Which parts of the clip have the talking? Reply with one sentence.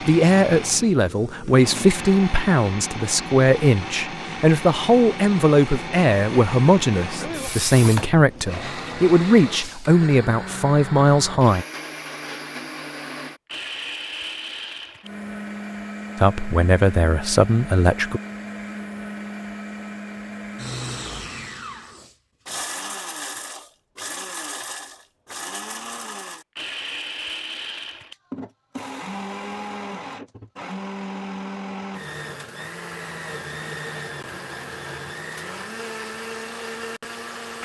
You can hear the talking from 0.0 to 11.7 s and from 16.1 to 18.2 s.